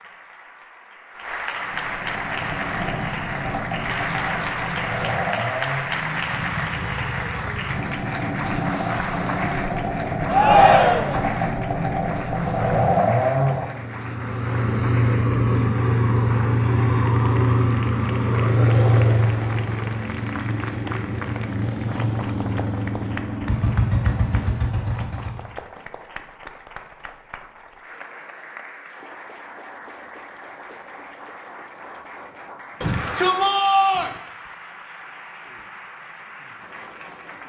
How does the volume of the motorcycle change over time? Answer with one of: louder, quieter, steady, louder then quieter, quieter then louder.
louder then quieter.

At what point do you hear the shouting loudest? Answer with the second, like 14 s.
11 s.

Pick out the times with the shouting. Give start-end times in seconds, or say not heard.
10.2-11.2, 32.8-34.1.